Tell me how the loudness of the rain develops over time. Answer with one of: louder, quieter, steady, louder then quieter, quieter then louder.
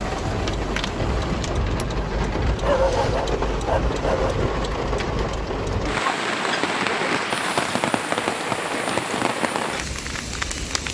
steady.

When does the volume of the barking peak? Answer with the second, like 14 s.
3 s.